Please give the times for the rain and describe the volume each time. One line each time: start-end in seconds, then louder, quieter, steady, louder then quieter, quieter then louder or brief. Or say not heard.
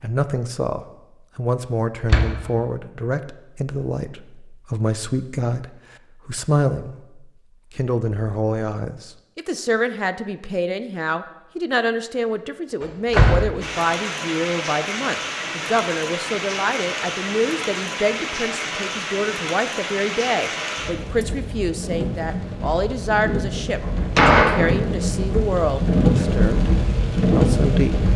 13.6-28.1 louder.